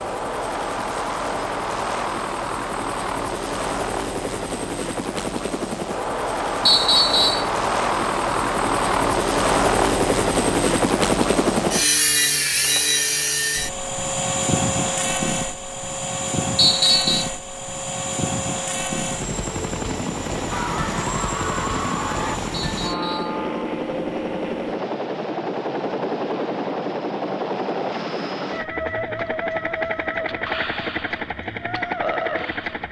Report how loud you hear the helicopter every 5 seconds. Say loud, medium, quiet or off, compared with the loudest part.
medium, loud, loud, medium, medium, medium, medium.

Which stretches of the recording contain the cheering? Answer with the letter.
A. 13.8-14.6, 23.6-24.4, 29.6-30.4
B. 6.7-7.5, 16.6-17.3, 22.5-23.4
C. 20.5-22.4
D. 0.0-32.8
C.